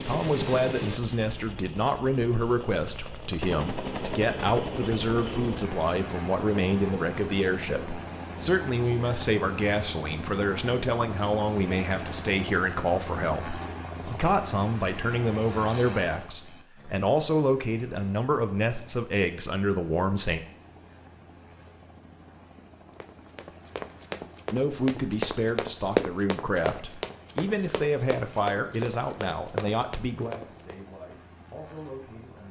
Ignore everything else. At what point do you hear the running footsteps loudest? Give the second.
26 s.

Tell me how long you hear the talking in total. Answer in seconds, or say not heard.
28 s.